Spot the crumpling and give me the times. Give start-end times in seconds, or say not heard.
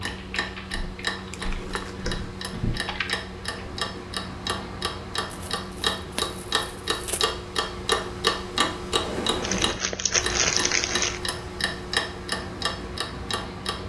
1.3-1.9, 5.3-7.2, 9.4-11.2.